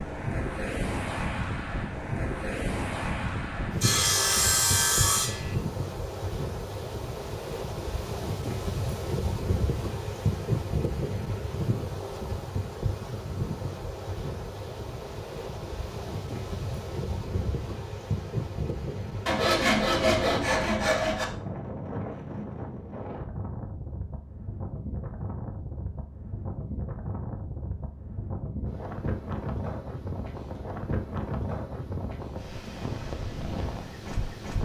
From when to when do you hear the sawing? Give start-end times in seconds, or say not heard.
3.8-5.5, 19.2-21.2.